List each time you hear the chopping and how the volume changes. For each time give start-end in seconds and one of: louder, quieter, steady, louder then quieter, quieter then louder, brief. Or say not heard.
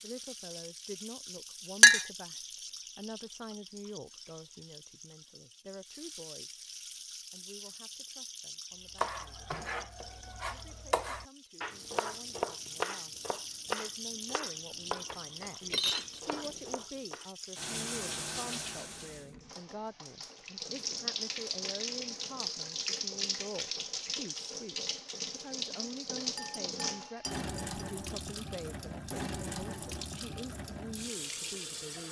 8.9-17.3 louder then quieter.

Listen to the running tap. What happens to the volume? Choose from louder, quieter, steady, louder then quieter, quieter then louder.
louder.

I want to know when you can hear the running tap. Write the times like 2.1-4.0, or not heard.
0.0-32.0.